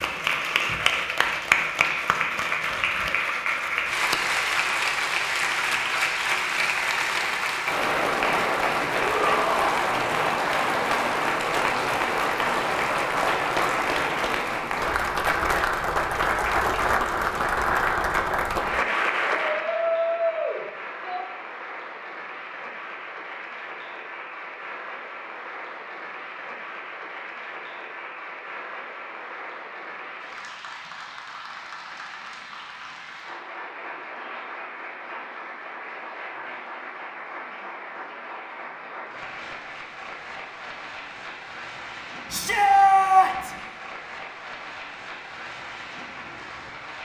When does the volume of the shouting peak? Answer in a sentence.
The volume of the shouting peaks at 43 seconds.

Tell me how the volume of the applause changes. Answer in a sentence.
The volume of the applause goes down.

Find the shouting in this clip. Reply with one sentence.
You can hear the shouting from 9.0 to 9.7 s, from 19.5 to 21.2 s and from 42.3 to 43.5 s.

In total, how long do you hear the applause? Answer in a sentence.
The applause can be heard for 47 seconds in total.